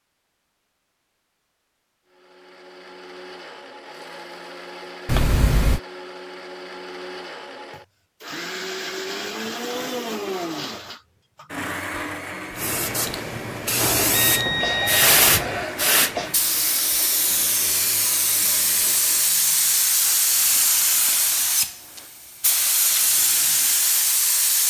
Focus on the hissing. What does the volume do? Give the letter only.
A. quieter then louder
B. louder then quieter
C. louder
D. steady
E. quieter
D.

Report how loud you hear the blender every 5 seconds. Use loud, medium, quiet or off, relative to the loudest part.
medium, loud, loud, medium, off.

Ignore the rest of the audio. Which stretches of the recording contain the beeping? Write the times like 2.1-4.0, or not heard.
5.0-5.8, 13.9-15.7.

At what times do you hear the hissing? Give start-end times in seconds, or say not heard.
12.6-24.6.